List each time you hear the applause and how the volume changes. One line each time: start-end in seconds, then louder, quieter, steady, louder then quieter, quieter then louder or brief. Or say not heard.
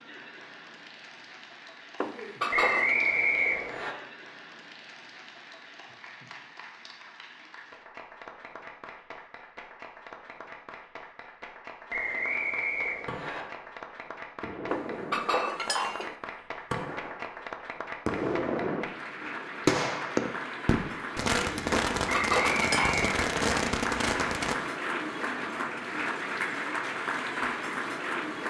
0.0-28.4 louder.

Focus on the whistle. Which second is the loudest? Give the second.
3 s.